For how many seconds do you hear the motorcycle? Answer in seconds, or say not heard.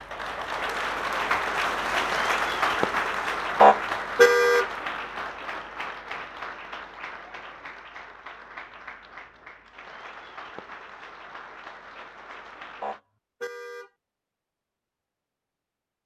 not heard.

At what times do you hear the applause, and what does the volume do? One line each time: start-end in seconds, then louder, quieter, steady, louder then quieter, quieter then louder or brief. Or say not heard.
0.0-13.0 quieter.